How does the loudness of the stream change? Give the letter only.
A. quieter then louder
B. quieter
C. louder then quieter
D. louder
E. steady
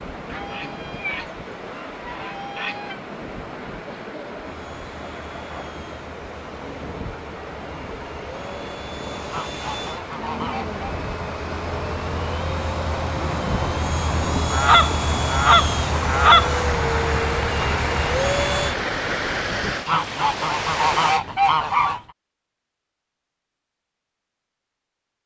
D.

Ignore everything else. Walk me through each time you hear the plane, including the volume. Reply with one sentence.
The plane can be heard from 4.4 to 18.8 s, getting louder.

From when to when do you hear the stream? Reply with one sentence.
You can hear the stream from 0.0 to 21.2 s.